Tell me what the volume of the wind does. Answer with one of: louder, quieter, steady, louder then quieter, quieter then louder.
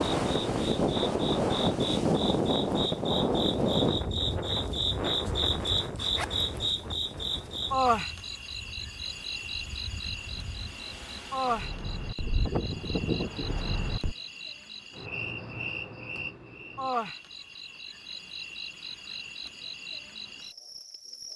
quieter then louder.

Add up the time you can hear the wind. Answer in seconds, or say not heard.
14 s.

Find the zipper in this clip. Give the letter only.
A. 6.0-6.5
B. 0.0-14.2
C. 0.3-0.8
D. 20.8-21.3
A.